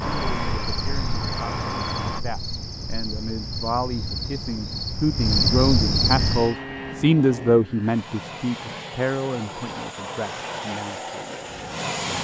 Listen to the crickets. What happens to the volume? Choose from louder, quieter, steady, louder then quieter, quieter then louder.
louder.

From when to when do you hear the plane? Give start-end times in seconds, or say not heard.
0.0-2.2, 6.2-12.2.